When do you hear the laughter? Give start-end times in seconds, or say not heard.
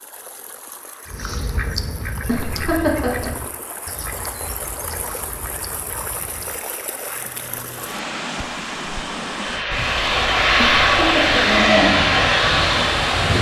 2.2-3.3, 10.6-11.4.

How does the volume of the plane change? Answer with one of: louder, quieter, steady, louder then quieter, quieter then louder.
louder.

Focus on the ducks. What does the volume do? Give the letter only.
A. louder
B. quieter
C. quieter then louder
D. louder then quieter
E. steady
B.